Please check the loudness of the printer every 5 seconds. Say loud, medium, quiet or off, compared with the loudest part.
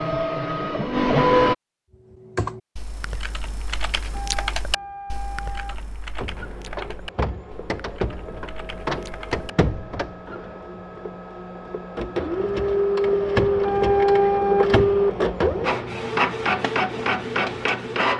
loud, medium, loud, loud.